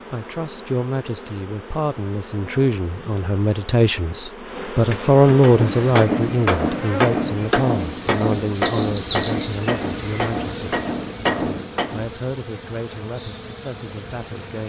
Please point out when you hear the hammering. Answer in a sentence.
You can hear the hammering from 5.4 to 12.1 s.